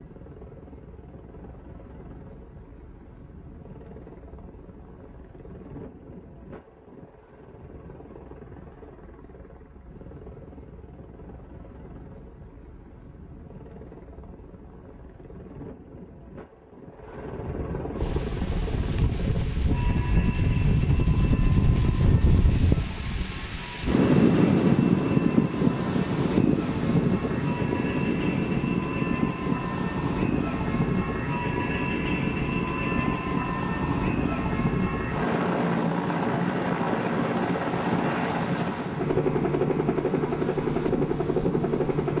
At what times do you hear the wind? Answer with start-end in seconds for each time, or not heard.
17.9-42.1.